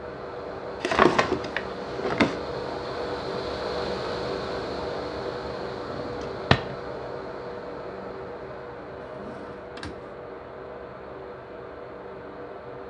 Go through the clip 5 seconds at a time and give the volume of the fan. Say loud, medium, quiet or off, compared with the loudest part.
loud, loud, medium.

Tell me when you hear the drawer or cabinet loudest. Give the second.
1 s.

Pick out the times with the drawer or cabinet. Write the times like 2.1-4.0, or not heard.
0.8-2.4, 5.8-6.8, 9.0-10.1.